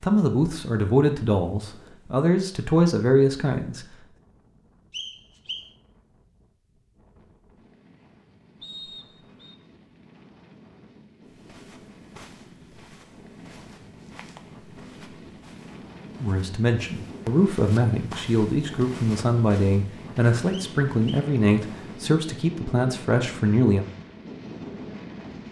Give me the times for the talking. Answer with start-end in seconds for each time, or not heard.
0.0-3.9, 16.2-23.9.